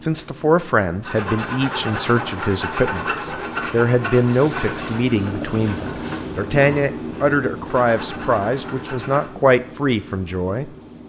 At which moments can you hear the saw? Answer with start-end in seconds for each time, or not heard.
1.1-9.3.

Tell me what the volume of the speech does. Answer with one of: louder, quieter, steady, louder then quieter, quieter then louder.
steady.